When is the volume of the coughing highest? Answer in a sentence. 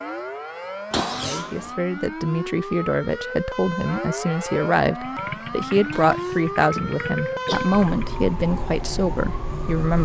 The volume of the coughing peaks at 1 second.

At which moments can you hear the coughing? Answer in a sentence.
You can hear the coughing from 0.9 to 1.8 s and from 5.9 to 7.7 s.